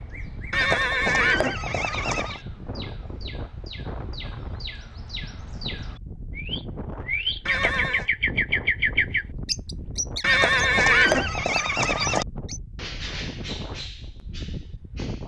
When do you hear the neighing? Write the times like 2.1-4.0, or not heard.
0.5-2.4, 7.5-8.1, 10.2-12.2.